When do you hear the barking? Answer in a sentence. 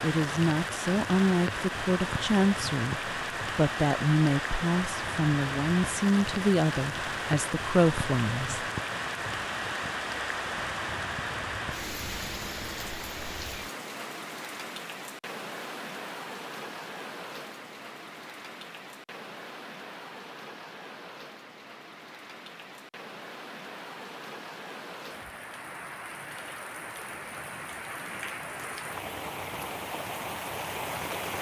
The barking can't be heard in this clip.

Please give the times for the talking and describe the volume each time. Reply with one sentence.
You can hear the talking from 0.0 to 8.7 s, at a steady volume.